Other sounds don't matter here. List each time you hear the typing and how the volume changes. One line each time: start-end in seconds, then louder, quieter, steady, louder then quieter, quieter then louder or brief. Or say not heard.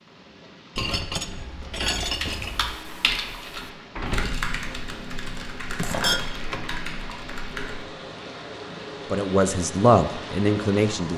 2.0-7.8 quieter.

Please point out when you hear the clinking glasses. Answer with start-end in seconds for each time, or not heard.
0.8-2.8, 5.8-6.7.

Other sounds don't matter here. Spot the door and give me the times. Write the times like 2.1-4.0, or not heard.
3.0-4.5.